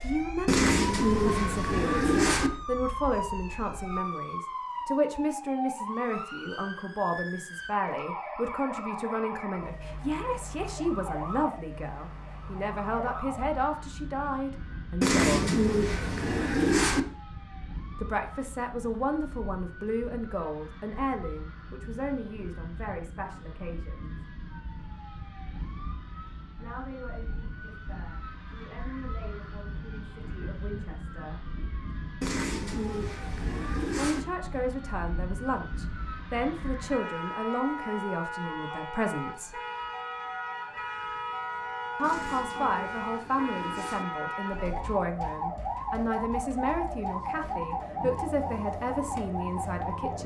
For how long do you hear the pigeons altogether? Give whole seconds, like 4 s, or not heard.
8 s.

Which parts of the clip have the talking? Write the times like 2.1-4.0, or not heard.
0.0-15.6, 18.0-24.2, 26.6-31.4, 34.0-39.6, 42.0-50.2.